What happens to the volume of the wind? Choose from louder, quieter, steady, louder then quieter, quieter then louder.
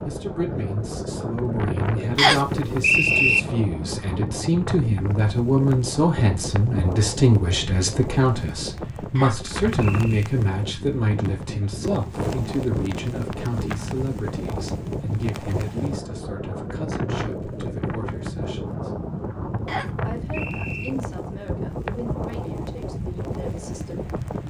steady.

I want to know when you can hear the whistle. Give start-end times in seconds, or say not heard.
2.1-3.4, 9.2-10.1, 19.6-20.9.